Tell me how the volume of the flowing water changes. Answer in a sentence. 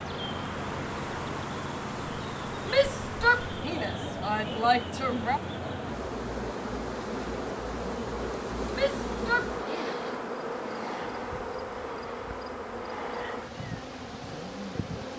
The loudness of the flowing water goes down.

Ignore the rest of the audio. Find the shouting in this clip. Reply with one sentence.
The shouting can be heard from 2.6 to 5.4 s and from 8.7 to 9.9 s.